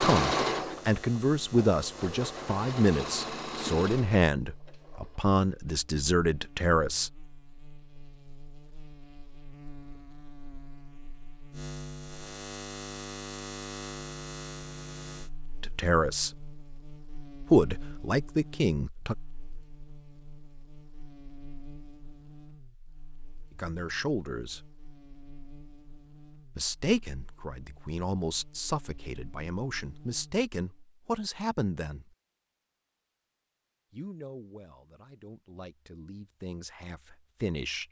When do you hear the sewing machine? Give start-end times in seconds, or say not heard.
0.0-5.2.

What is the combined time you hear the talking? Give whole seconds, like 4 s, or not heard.
20 s.